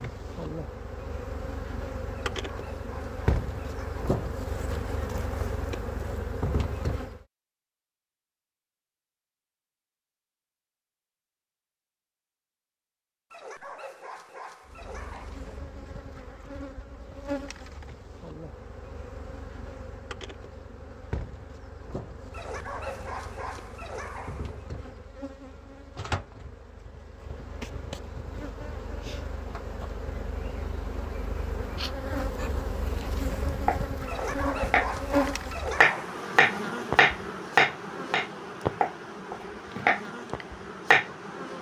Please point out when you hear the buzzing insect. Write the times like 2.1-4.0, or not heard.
0.0-7.2, 14.7-41.5.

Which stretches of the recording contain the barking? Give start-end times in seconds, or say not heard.
2.1-4.0, 13.3-15.6, 22.3-24.6, 34.0-36.2.